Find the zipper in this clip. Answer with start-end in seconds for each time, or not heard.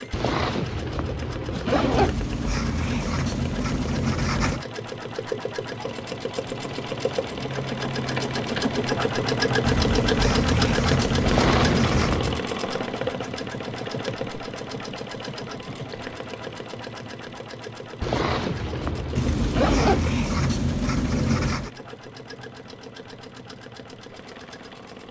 0.1-2.1, 11.2-12.4, 18.0-20.0.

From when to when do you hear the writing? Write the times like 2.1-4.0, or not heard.
1.9-4.7, 9.7-12.2, 19.1-21.7.